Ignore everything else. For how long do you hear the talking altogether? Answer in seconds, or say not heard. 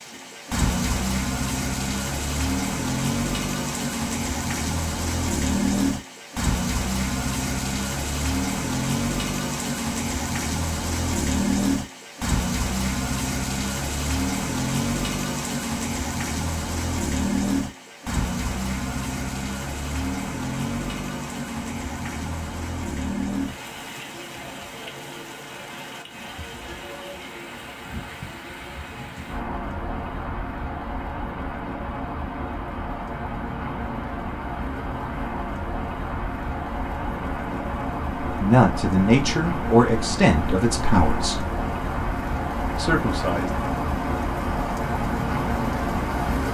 4 s.